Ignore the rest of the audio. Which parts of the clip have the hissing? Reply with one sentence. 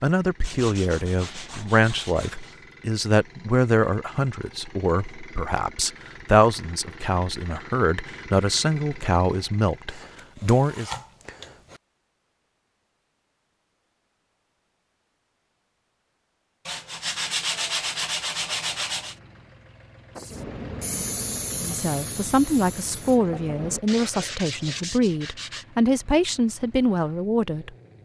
The hissing can be heard from 20.1 to 23.8 s.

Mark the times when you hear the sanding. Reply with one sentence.
You can hear the sanding from 0.4 to 2.6 s, from 9.9 to 11.8 s, from 16.6 to 19.1 s and from 23.9 to 25.6 s.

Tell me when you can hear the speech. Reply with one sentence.
The speech can be heard from 0.0 to 10.9 s and from 21.6 to 27.7 s.